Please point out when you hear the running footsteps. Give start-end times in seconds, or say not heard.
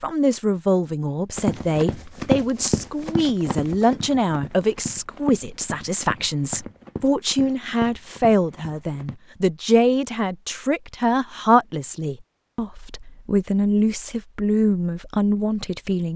1.4-9.2.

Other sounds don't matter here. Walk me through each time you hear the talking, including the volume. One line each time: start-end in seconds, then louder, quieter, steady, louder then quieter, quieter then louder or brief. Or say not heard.
0.0-16.1 steady.